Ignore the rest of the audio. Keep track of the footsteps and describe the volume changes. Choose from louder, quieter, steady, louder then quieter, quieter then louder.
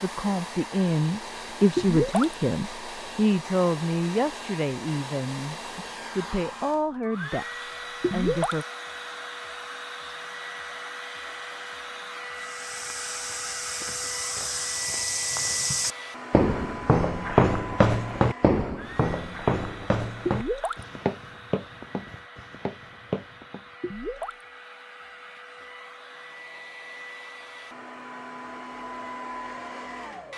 louder then quieter.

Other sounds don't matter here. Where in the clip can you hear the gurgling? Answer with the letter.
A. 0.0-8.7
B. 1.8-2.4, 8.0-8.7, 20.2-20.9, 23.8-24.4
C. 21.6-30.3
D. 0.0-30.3
B.